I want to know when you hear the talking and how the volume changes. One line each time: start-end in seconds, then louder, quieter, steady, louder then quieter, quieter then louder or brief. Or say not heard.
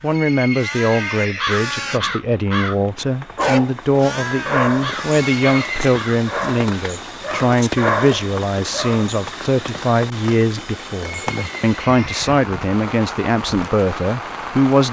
0.0-14.8 steady.